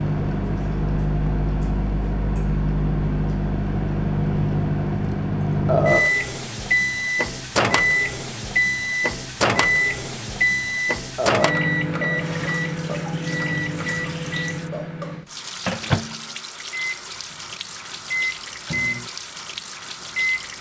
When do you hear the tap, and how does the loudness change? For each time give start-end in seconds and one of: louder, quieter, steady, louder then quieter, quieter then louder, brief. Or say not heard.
12.1-20.5 steady.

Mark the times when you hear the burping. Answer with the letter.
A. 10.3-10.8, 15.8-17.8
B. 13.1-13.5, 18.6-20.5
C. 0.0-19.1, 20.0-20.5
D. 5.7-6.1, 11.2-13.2
D.